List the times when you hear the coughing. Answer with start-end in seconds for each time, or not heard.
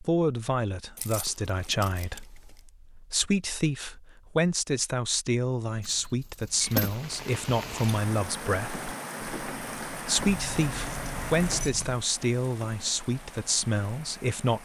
not heard.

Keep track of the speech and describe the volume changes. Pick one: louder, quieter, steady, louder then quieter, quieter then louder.
steady.